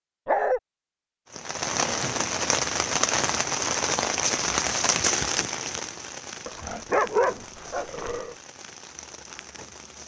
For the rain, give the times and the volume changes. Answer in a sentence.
The rain can be heard from 1.3 to 10.0 s, getting quieter.